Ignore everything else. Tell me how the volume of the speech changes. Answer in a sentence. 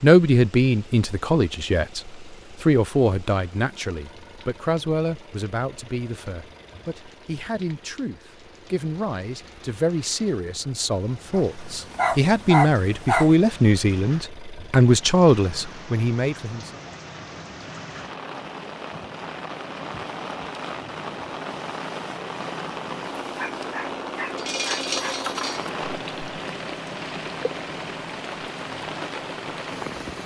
The loudness of the speech goes down, then up.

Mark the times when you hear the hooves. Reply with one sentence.
The hooves can't be heard in this clip.